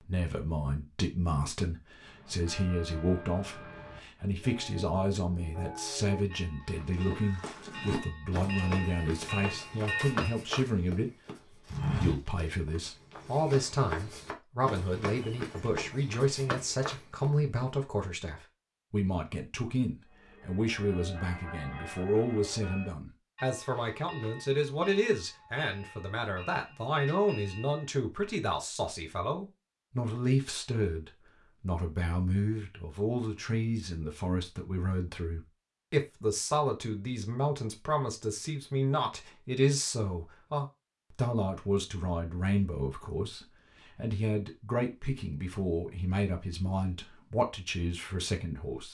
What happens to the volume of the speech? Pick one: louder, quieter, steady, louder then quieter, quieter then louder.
steady.